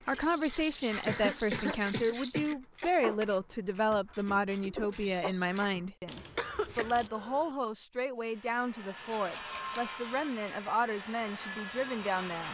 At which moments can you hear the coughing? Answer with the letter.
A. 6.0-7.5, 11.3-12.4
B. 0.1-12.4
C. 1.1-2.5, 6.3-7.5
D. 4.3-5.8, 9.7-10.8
C.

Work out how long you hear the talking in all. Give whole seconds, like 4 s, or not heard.
12 s.